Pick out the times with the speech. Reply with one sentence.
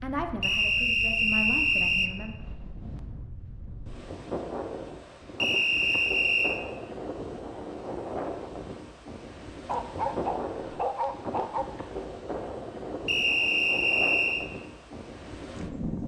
You can hear the speech from 0.0 to 2.4 s.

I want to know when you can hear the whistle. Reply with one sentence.
You can hear the whistle from 0.4 to 2.1 s, from 5.4 to 6.6 s and from 13.1 to 14.5 s.